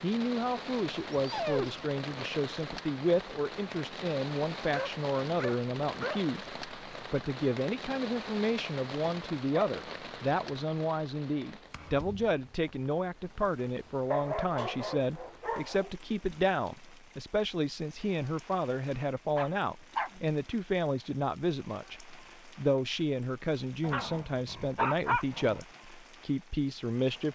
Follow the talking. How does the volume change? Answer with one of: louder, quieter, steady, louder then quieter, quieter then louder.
steady.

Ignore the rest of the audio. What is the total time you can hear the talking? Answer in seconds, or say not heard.
27 s.